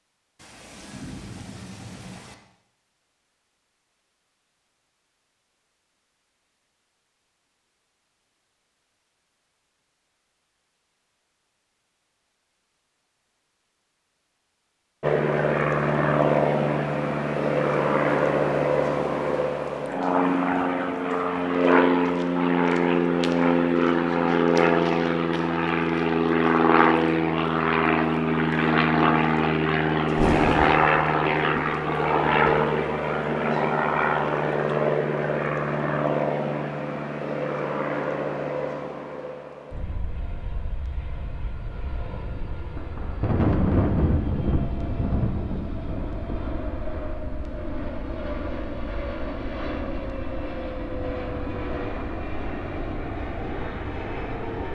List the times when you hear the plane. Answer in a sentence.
You can hear the plane from 15.0 to 54.6 s.